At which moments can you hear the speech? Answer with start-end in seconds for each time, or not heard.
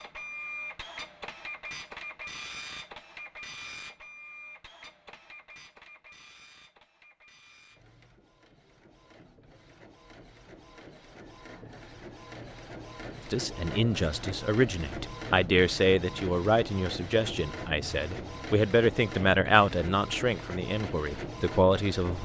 13.3-22.1.